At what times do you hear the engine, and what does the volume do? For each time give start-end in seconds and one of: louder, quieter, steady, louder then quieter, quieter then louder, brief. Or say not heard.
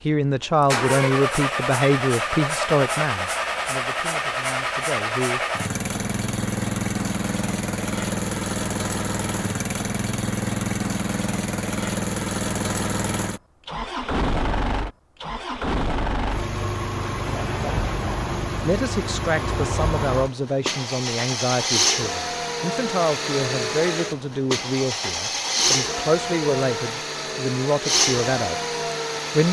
0.0-29.4 steady.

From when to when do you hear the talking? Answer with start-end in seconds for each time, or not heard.
0.1-5.4, 18.6-29.4.